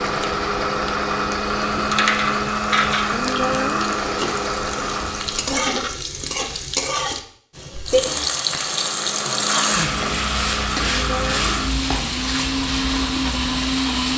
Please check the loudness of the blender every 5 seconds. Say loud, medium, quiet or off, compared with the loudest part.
loud, medium, loud.